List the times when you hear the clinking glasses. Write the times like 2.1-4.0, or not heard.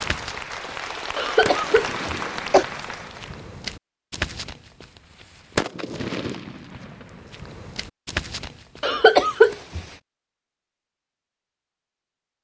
not heard.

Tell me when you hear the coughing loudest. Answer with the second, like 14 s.
9 s.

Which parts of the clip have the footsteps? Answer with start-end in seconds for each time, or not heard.
not heard.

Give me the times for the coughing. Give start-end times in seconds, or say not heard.
1.1-2.6, 8.8-9.8.